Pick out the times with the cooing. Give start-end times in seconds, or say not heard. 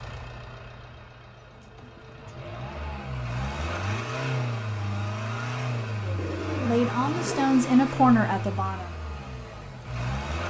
1.4-2.4, 6.2-7.5.